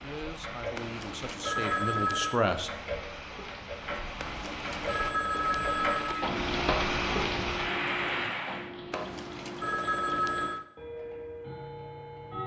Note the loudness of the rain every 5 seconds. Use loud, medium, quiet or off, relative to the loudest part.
medium, loud, off.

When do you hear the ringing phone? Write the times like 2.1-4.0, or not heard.
0.8-2.4, 4.2-6.3, 8.9-10.7.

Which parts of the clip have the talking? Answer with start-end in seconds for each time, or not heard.
0.0-2.7.